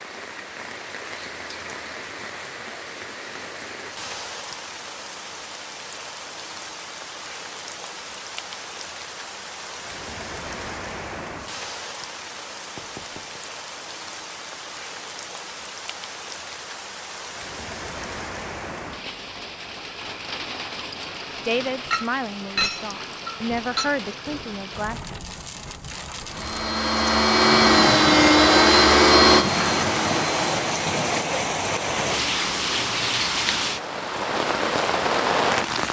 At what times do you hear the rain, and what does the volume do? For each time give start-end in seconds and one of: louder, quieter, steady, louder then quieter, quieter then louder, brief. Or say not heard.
0.0-35.8 louder.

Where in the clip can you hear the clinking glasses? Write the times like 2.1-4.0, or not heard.
21.9-23.9.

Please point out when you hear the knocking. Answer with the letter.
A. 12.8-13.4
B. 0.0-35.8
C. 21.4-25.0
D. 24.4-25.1
A.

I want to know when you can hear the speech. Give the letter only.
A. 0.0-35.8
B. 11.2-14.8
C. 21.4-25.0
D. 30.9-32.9
C.